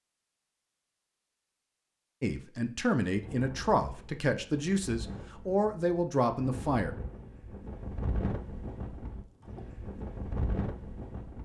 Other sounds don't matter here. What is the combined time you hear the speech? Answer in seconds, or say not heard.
5 s.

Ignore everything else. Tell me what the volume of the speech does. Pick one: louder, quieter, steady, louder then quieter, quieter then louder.
steady.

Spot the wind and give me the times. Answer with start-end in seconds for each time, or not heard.
3.1-11.3.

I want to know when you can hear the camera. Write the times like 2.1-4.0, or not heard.
not heard.